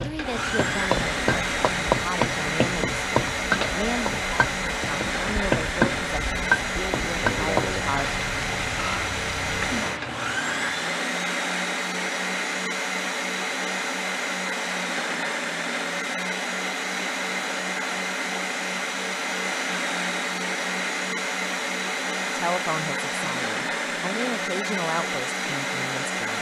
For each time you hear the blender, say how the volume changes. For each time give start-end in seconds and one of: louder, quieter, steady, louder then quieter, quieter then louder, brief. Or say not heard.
0.0-26.3 steady.